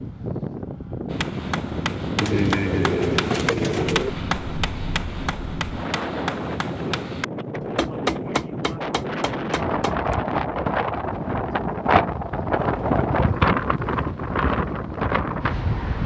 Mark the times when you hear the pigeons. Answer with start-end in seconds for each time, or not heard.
2.2-4.1.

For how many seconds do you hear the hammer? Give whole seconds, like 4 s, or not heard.
9 s.